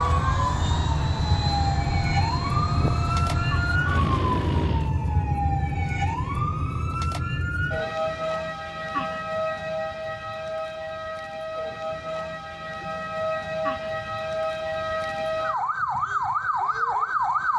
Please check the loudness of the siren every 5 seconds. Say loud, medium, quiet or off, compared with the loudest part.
loud, loud, medium, loud.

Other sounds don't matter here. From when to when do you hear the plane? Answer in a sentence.
You can hear the plane from 0.0 to 5.0 s.